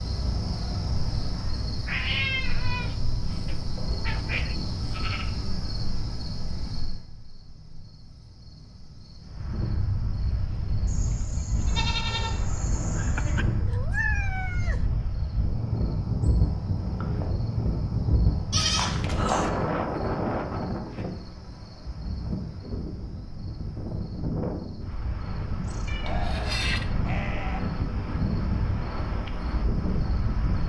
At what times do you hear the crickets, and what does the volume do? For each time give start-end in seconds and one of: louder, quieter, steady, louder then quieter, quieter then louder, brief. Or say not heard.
0.0-30.6 quieter.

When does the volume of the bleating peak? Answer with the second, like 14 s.
19 s.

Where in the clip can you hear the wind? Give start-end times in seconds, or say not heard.
9.2-30.6.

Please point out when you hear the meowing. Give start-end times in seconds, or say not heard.
1.9-4.5, 13.2-14.8, 25.9-27.1.